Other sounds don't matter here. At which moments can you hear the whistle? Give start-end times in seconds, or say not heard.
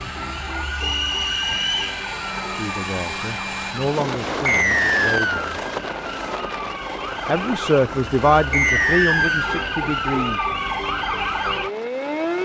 0.8-1.9, 4.5-5.5, 8.5-9.7.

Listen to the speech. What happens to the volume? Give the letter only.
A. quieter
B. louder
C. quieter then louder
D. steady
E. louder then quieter
E.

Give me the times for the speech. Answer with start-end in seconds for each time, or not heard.
2.4-5.5, 7.2-10.9.